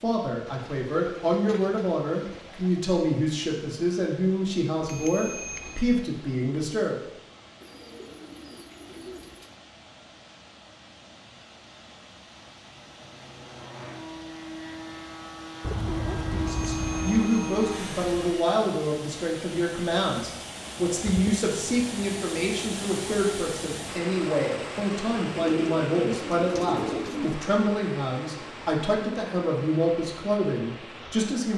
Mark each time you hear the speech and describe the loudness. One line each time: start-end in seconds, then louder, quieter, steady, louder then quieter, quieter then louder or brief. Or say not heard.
0.0-7.0 steady
16.1-31.5 steady.